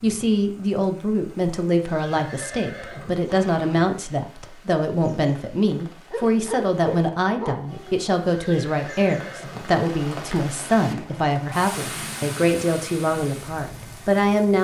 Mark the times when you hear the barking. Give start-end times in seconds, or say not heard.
6.1-8.0.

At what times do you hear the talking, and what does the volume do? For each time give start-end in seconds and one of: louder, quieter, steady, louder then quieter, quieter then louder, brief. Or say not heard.
0.0-14.5 steady.